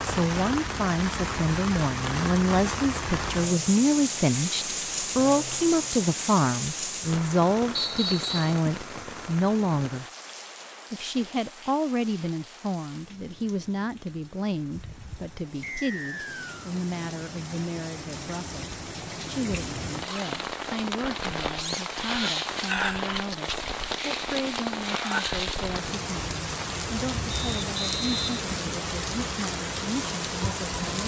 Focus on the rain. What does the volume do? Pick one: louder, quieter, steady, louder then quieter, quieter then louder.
quieter then louder.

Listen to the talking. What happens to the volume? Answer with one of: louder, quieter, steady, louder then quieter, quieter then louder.
quieter.